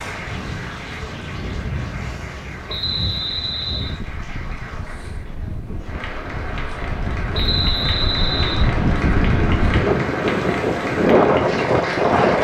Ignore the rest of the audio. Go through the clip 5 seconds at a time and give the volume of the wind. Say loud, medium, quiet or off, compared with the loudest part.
quiet, medium, loud.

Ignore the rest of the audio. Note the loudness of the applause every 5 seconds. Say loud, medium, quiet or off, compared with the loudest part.
medium, loud, loud.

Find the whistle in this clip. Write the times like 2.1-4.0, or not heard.
2.6-4.0, 7.3-8.7.